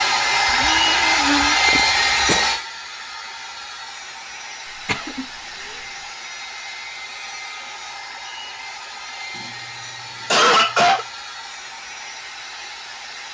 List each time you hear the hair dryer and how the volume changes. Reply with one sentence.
The hair dryer can be heard from 0.0 to 13.2 s, getting quieter.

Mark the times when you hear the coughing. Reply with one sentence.
The coughing can be heard from 0.5 to 2.5 s, from 4.8 to 5.8 s and from 9.3 to 11.1 s.